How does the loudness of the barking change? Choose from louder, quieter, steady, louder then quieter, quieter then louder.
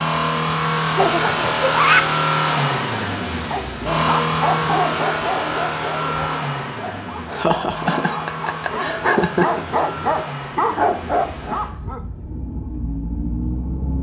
quieter then louder.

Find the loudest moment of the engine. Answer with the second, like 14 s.
2 s.